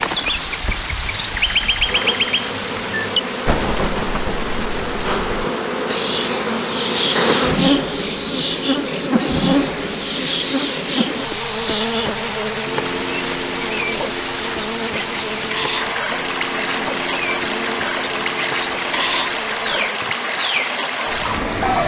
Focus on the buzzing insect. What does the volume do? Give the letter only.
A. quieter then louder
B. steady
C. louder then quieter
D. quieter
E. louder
C.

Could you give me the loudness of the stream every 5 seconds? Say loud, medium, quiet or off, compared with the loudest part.
loud, medium, loud, loud, loud.